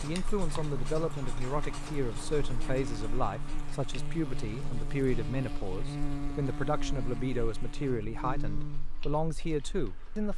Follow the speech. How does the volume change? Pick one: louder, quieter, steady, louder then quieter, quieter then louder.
steady.